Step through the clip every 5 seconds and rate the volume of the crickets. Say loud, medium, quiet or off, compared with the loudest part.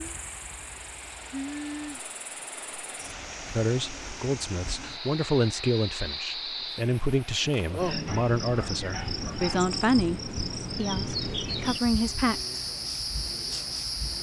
medium, loud, loud.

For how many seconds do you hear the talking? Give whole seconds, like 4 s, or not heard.
9 s.